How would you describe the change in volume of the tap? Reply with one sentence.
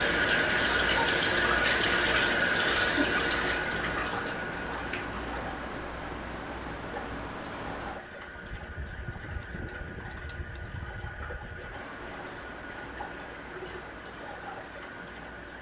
The volume of the tap goes down.